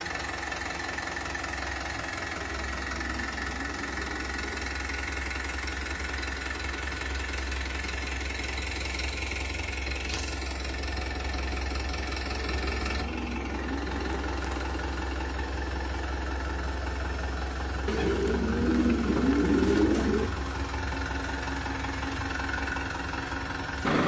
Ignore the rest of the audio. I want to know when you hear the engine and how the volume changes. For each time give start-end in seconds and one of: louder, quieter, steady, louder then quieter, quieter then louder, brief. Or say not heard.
0.0-24.0 steady.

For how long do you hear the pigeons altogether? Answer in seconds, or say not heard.
7 s.